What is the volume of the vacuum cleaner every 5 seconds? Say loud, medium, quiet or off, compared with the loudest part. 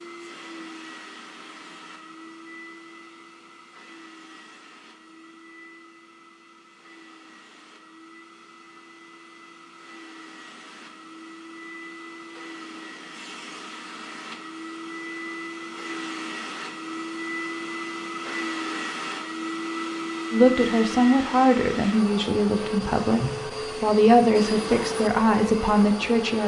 quiet, quiet, medium, loud, loud, loud.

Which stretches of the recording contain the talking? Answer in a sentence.
The talking can be heard from 20.3 to 26.4 s.